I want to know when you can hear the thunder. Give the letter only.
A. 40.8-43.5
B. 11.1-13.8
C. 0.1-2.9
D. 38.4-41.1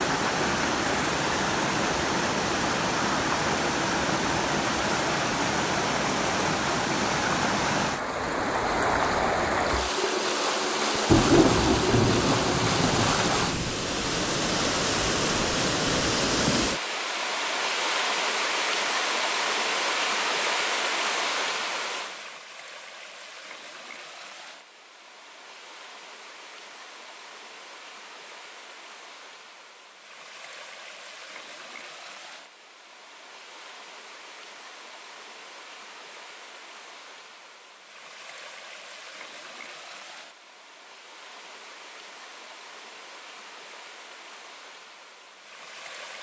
B.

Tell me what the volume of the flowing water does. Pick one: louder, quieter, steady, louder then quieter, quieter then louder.
quieter.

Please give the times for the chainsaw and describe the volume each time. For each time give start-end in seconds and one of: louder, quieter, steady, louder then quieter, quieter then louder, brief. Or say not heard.
not heard.